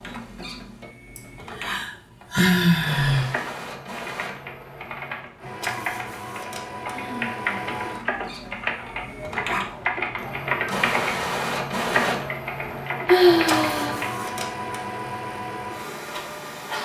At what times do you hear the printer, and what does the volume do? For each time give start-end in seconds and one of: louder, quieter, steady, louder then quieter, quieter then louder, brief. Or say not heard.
0.0-16.7 louder.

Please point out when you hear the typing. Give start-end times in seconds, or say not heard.
3.1-14.1.